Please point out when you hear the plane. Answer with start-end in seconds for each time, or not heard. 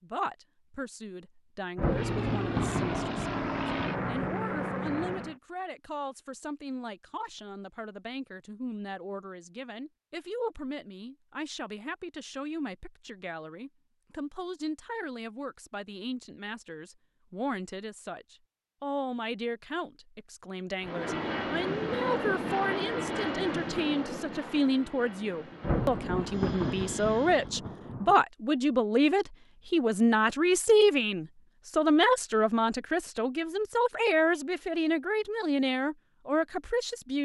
1.8-5.4, 20.8-27.5.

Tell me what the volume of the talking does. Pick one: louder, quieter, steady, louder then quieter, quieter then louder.
louder.